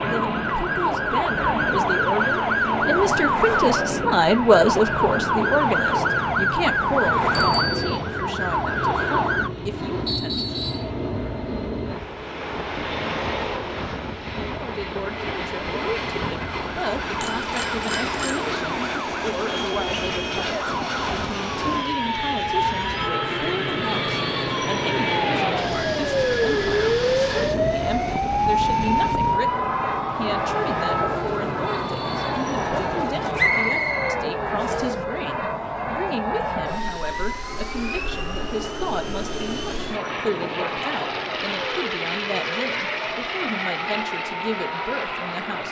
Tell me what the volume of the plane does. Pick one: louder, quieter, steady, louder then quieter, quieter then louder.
steady.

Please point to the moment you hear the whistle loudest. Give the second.
34 s.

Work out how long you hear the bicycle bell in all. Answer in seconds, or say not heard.
3 s.